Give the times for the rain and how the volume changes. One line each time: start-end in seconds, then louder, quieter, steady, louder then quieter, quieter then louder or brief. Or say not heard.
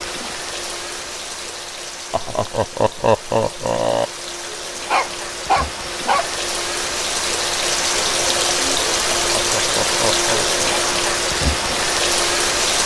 0.0-12.8 louder.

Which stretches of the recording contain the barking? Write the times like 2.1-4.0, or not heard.
4.9-6.3.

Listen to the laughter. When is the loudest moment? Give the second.
3 s.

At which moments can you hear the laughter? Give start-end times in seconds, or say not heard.
2.1-4.0, 9.2-10.8.